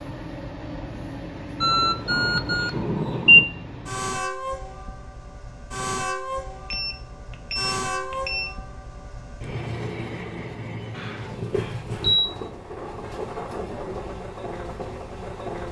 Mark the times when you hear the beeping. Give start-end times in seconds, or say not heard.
1.6-3.5, 6.7-8.5, 10.9-12.3.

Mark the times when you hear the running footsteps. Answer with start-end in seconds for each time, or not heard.
not heard.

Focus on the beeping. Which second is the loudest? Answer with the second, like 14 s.
3 s.